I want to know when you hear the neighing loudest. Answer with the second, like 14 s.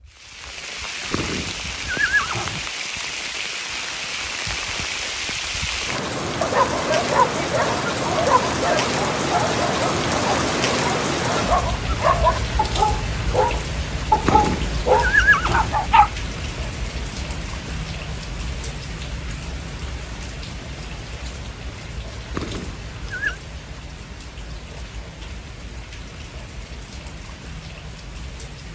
15 s.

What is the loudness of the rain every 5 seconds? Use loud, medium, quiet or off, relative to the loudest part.
medium, loud, loud, medium, quiet, quiet.